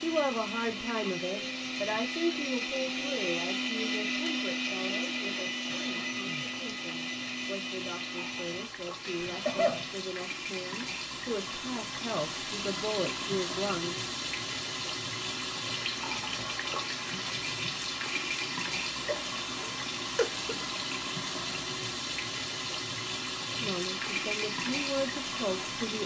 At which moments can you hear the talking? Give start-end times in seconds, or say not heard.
0.0-14.1, 23.6-26.0.